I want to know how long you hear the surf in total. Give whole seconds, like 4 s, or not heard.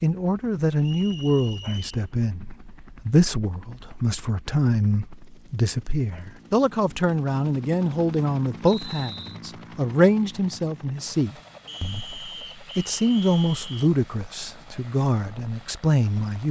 not heard.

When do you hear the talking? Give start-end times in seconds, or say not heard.
0.0-16.4.